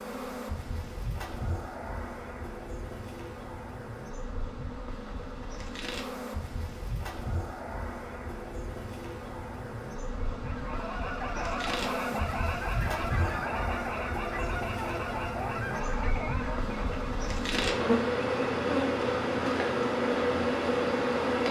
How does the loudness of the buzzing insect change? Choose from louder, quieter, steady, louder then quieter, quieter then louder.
louder.